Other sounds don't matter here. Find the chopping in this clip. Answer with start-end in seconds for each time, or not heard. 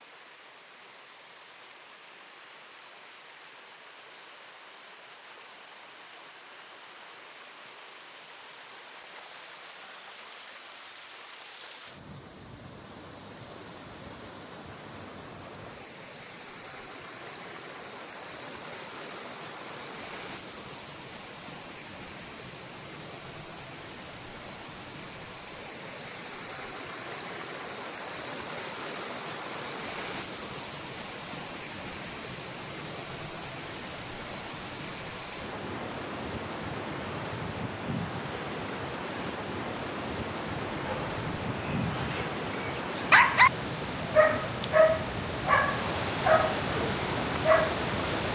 not heard.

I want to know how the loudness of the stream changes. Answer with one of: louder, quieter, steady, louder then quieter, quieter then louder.
louder.